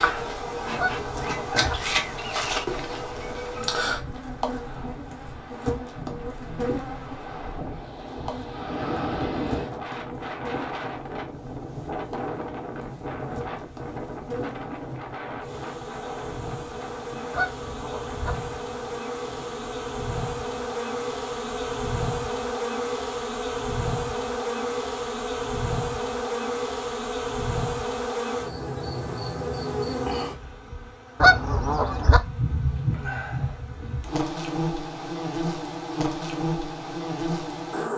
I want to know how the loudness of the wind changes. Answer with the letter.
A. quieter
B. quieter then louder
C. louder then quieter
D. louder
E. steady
C.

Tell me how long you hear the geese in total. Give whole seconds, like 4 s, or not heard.
3 s.